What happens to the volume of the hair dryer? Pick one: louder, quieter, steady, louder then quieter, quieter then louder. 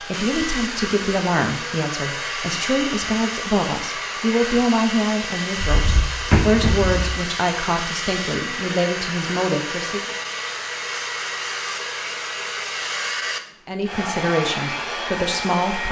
steady.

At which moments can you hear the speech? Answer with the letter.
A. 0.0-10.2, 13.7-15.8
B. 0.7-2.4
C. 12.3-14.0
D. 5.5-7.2
A.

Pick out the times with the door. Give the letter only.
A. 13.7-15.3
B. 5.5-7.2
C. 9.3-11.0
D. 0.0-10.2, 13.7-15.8
B.